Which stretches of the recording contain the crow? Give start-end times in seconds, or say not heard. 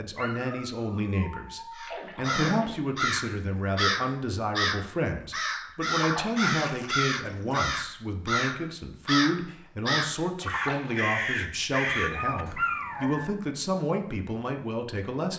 1.8-12.6.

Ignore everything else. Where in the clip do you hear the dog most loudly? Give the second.
13 s.